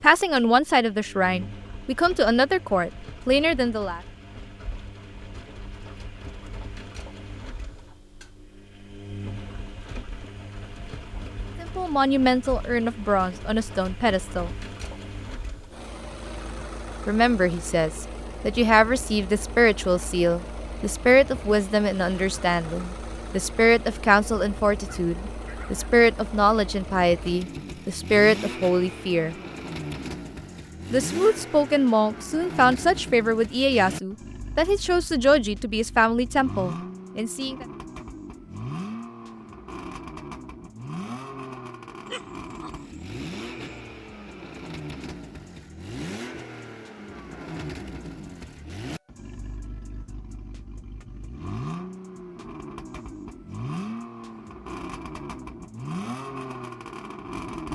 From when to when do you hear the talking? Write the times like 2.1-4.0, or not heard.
0.0-4.0, 11.6-14.5, 17.1-29.4, 30.9-37.6.